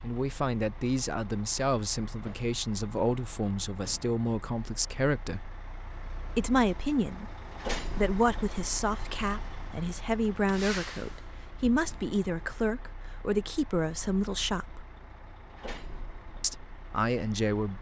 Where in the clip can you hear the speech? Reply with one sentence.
You can hear the speech from 0.0 to 5.5 s, from 6.3 to 14.8 s and from 16.4 to 17.7 s.